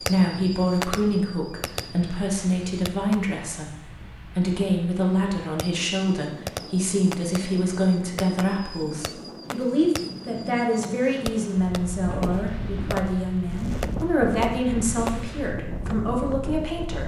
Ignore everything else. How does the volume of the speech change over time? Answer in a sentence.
The loudness of the speech stays about the same.